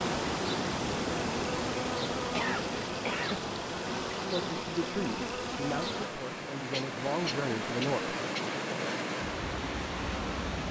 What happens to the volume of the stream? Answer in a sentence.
The loudness of the stream goes down, then up.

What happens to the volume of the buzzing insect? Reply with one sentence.
The volume of the buzzing insect stays about the same.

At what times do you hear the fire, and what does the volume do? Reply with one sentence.
You can't hear the fire here.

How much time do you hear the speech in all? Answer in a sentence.
The speech can be heard for 4 seconds in total.